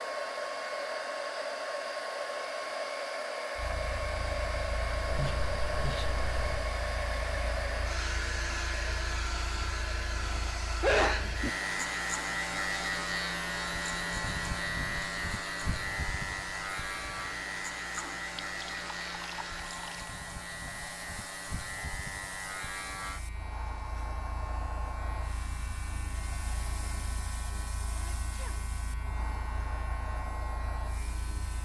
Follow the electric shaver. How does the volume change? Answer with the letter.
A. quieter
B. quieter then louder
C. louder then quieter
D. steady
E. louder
C.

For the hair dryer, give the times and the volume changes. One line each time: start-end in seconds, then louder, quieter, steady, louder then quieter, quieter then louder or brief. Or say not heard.
0.0-31.6 quieter.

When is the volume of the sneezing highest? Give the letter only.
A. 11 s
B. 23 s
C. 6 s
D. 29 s
A.